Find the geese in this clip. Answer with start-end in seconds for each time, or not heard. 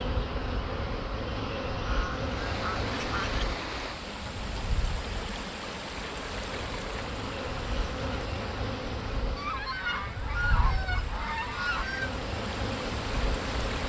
1.8-3.5, 9.3-12.1.